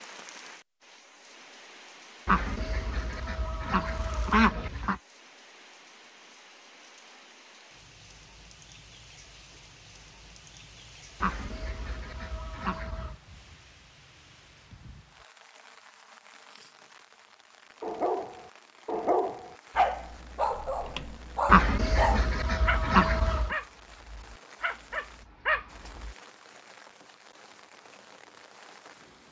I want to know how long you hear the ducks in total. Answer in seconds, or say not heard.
7 s.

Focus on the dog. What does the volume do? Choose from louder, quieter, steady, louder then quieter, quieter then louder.
quieter then louder.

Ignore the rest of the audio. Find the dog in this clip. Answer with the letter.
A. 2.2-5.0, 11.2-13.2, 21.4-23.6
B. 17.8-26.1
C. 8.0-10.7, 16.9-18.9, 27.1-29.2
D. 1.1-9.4
B.